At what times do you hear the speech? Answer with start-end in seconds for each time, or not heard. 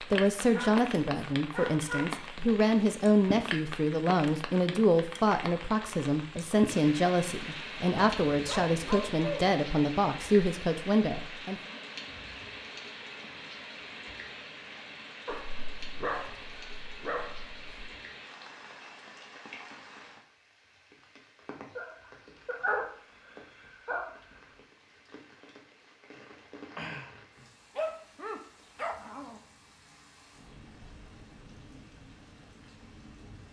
0.0-11.6.